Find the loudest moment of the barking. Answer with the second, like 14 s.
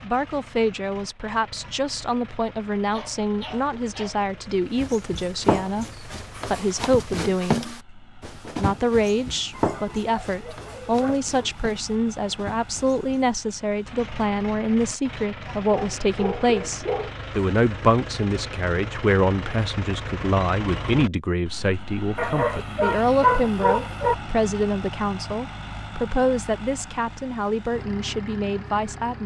23 s.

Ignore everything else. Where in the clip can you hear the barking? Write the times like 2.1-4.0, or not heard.
2.9-4.2, 9.6-11.5, 15.6-17.1, 22.1-24.1.